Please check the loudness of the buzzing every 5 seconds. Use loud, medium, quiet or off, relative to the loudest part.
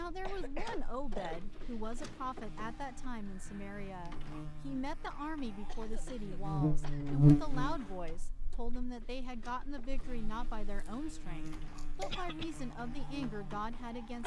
quiet, loud, quiet.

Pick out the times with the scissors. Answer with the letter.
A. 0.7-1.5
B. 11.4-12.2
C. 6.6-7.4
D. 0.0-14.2
B.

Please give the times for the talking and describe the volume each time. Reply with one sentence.
You can hear the talking from 0.0 to 14.2 s, at a steady volume.